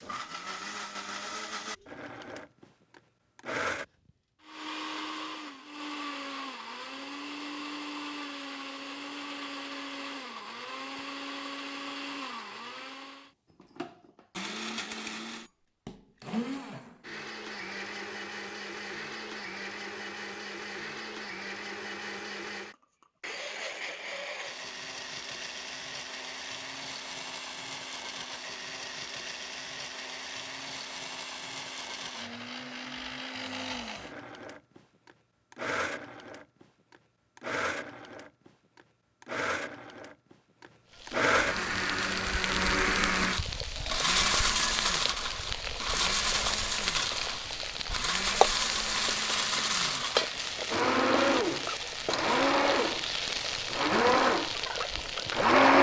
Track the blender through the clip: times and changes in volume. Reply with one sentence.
You can hear the blender from 0.0 to 55.7 s, getting louder.